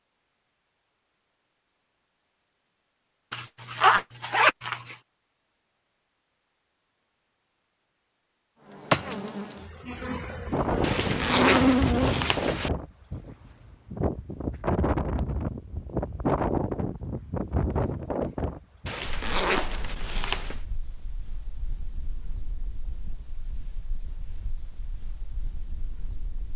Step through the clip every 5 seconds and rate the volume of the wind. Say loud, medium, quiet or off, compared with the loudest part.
off, off, loud, loud, quiet, quiet.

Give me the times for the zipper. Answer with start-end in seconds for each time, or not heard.
3.3-5.0, 10.8-12.7, 18.9-20.6.